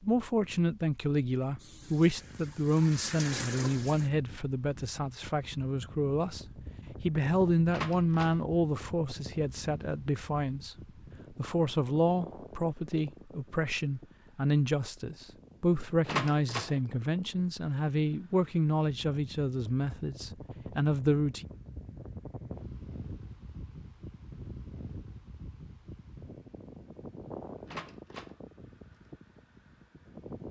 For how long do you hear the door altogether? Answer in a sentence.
You can hear the door for 2 seconds altogether.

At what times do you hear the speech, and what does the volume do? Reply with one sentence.
The speech can be heard from 0.0 to 21.4 s, at a steady volume.